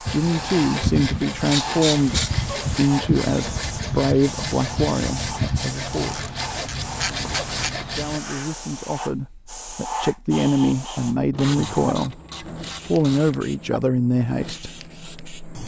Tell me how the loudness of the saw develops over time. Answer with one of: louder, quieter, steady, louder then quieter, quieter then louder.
steady.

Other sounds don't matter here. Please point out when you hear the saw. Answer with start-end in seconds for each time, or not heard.
0.1-8.2.